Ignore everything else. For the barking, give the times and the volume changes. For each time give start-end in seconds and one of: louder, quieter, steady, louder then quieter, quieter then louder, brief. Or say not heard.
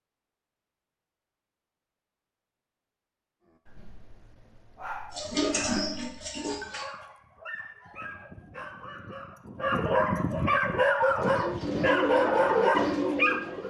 3.5-13.6 louder.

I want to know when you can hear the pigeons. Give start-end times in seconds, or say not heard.
5.1-6.8, 11.2-13.6.